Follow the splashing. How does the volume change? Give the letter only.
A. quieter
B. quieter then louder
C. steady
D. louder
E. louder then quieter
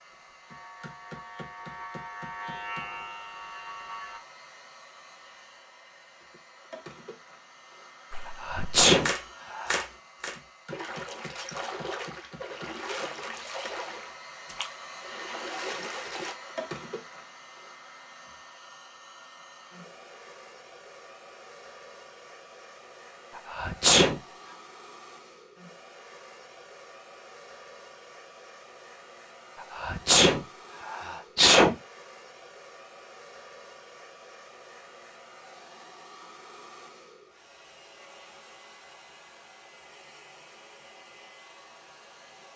A.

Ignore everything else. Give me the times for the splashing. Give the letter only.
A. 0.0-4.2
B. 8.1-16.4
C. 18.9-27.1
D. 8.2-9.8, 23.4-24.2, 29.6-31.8
B.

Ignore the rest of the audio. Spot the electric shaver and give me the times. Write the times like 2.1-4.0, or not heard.
0.0-4.2.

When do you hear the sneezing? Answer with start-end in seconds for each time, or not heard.
8.2-9.8, 23.4-24.2, 29.6-31.8.